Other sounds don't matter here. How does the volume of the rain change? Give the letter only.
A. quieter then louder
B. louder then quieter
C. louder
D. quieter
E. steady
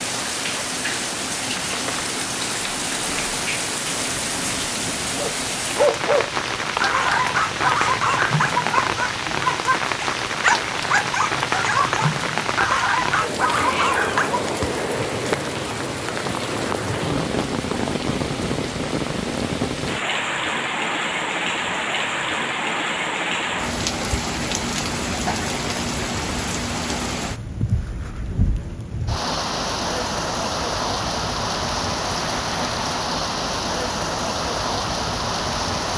E.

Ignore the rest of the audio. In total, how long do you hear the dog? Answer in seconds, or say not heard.
9 s.